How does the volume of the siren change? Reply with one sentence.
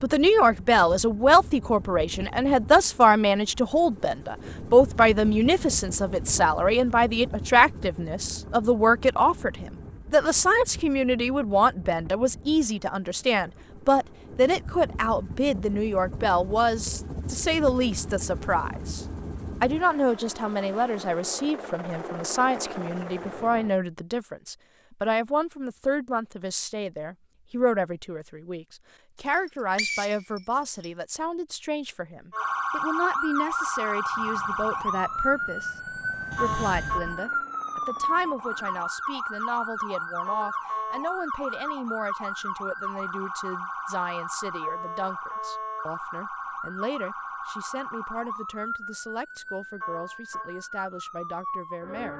The loudness of the siren goes down.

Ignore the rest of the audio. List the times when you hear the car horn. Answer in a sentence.
The car horn can't be heard in this clip.